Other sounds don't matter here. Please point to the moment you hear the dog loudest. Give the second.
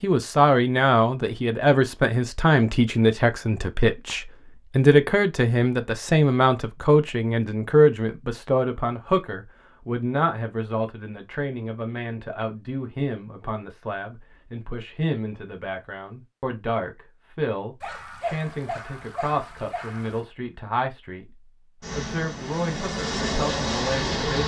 18 s.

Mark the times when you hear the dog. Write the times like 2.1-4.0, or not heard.
17.8-20.2.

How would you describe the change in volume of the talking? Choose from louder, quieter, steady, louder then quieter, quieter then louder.
quieter.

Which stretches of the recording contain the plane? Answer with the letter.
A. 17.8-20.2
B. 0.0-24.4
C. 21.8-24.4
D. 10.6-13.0
C.